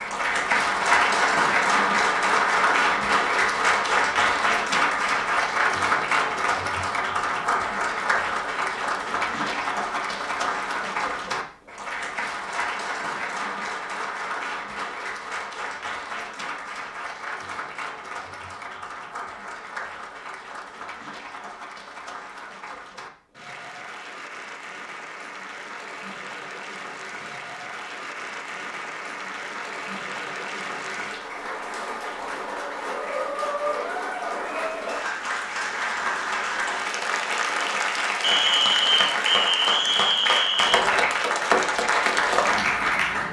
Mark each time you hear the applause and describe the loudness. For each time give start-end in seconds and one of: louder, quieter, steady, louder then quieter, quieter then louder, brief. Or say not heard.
0.0-43.2 quieter then louder.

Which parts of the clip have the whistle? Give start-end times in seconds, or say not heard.
38.2-40.8.